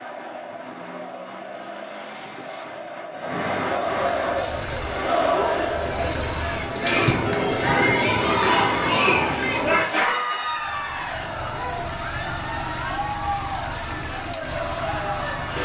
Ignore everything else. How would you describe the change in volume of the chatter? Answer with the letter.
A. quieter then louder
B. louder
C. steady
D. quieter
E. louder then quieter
E.